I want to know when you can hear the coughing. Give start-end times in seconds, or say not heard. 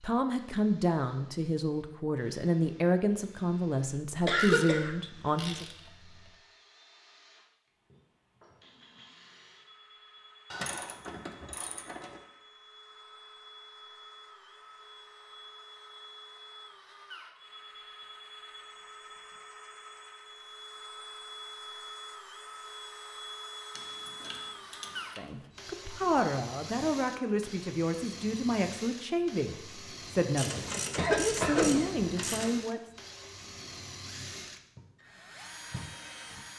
4.2-5.5, 30.9-32.0.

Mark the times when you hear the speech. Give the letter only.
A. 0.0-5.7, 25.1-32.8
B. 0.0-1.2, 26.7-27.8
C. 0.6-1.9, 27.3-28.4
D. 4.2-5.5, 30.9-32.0
A.